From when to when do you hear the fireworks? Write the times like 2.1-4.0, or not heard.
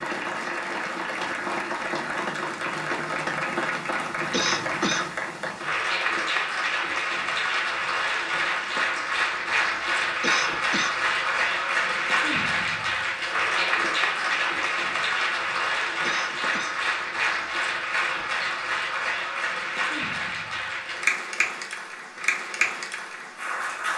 not heard.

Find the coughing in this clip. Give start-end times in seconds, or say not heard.
4.3-5.1, 10.2-11.0, 16.0-16.8.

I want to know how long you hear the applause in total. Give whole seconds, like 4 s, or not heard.
24 s.